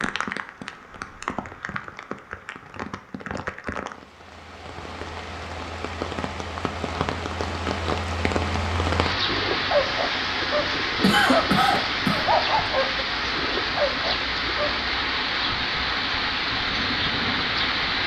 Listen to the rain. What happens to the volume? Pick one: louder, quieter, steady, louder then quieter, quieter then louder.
louder.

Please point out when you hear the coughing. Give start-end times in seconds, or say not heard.
11.0-12.2.